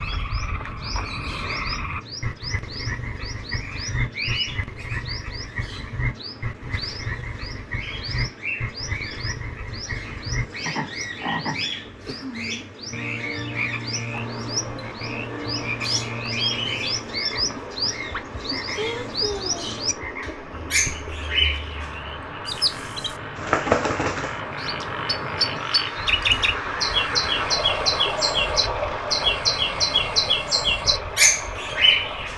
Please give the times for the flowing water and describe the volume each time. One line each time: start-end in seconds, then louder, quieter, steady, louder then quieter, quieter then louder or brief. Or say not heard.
14.1-32.3 louder.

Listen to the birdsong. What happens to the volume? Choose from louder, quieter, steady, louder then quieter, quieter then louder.
louder.